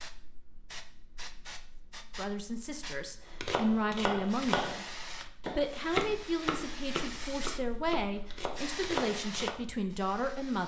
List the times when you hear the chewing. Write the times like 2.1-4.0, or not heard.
not heard.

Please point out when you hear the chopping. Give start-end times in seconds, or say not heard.
3.4-9.6.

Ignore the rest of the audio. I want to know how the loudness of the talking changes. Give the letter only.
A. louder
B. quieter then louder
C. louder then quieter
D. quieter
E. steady
E.